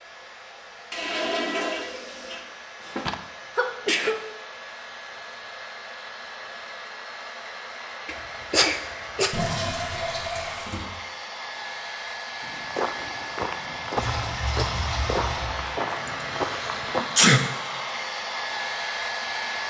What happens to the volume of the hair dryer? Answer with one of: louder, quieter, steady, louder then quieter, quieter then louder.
louder.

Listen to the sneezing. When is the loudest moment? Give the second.
17 s.